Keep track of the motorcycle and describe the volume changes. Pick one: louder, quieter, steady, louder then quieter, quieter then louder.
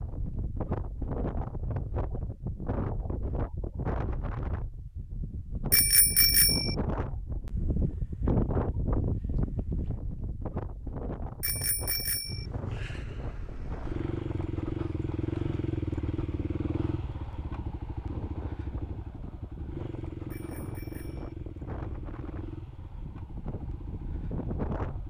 quieter.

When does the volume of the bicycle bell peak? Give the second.
6 s.